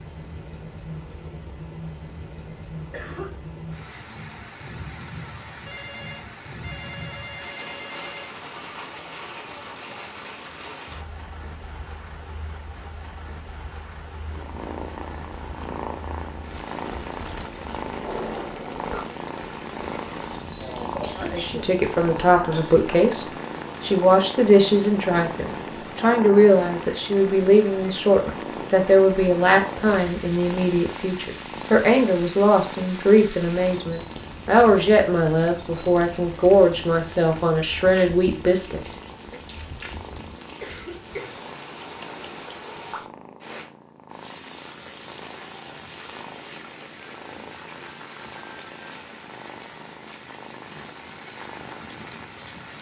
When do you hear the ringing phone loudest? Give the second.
18 s.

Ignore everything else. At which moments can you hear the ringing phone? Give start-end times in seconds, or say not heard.
5.7-8.3, 18.0-19.1, 47.0-49.0.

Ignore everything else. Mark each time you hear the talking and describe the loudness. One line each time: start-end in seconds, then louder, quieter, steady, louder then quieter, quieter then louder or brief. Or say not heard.
21.1-38.8 steady.